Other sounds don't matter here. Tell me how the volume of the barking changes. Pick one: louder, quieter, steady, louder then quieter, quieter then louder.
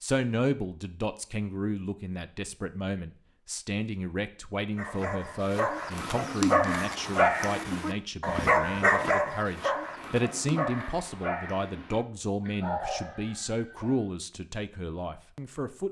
quieter.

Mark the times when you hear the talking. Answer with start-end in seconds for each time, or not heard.
0.0-15.8.